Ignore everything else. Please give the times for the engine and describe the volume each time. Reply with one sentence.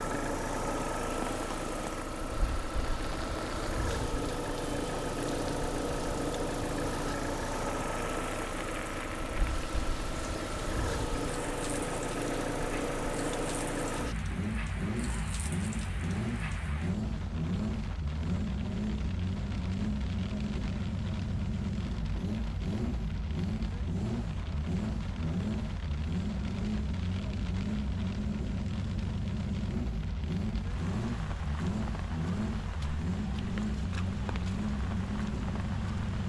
The engine can be heard from 0.0 to 36.2 s, at a steady volume.